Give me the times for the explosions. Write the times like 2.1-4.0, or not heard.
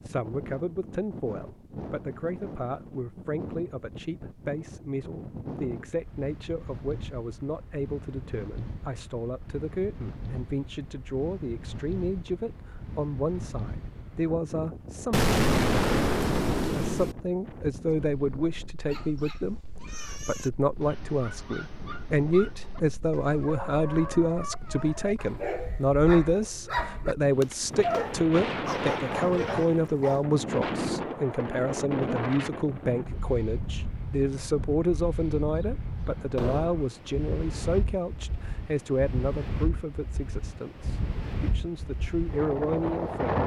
15.1-17.1, 36.4-36.9.